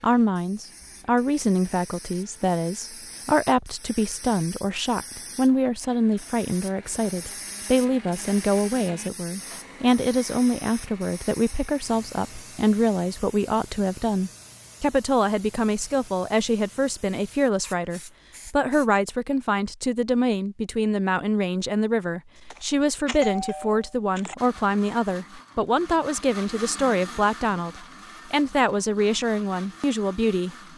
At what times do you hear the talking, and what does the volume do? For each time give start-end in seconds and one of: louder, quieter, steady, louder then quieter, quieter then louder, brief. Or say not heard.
0.0-30.6 steady.